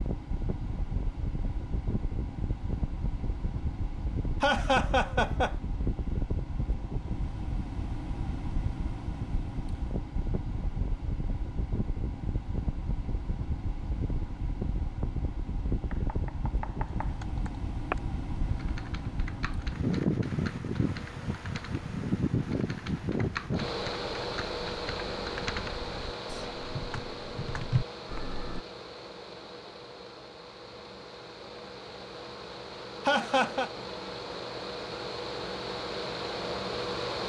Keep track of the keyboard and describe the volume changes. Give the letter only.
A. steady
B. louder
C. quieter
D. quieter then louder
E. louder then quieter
D.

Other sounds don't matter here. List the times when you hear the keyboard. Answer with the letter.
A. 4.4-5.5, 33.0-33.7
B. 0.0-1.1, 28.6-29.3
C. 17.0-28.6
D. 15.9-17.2
C.